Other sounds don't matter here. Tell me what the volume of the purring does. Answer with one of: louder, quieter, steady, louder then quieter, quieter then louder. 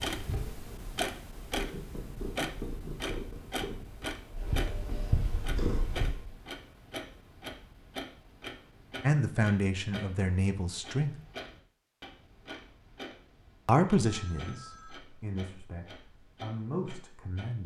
louder.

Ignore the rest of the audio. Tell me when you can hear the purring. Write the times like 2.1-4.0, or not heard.
0.1-6.3.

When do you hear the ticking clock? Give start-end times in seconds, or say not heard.
0.0-17.6.